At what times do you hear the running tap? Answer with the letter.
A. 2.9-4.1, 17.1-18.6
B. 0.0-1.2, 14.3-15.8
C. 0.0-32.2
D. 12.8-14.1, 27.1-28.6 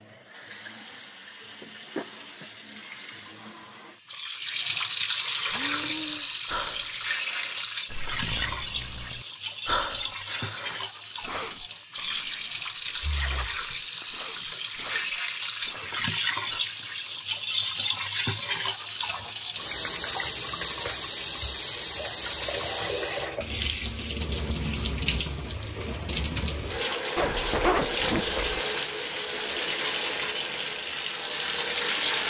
C.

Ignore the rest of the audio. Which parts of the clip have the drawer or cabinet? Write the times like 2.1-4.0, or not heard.
not heard.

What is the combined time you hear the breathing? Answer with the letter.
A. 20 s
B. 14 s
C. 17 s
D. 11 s
D.